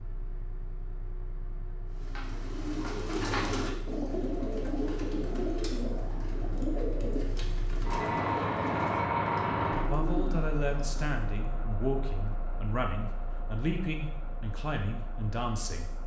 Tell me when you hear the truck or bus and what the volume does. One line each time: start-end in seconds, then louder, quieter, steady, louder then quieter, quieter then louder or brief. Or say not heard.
0.0-16.0 louder then quieter.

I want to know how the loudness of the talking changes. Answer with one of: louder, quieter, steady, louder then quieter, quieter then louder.
steady.